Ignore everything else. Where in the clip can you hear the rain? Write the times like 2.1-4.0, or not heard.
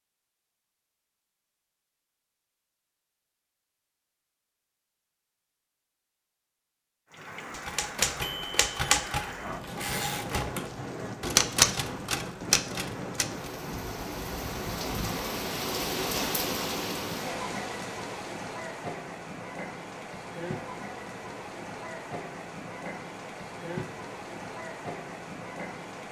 7.1-26.0.